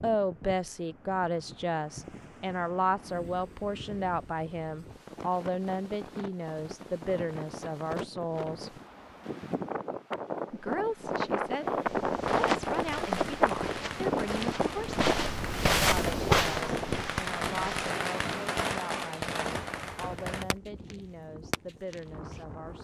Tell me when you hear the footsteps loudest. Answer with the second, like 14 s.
16 s.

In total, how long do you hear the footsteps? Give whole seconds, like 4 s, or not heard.
6 s.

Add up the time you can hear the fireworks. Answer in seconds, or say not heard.
10 s.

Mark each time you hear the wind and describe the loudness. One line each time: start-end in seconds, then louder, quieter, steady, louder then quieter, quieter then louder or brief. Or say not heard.
0.0-22.7 louder then quieter.